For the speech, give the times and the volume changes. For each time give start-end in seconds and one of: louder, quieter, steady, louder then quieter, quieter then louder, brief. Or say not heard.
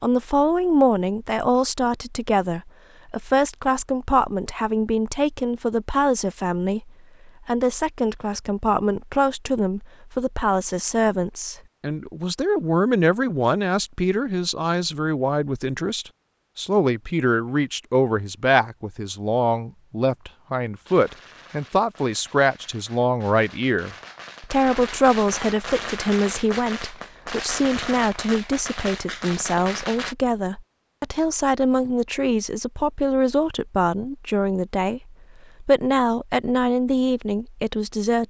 0.0-38.2 steady.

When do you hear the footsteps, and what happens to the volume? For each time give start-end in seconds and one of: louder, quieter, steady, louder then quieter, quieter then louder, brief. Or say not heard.
not heard.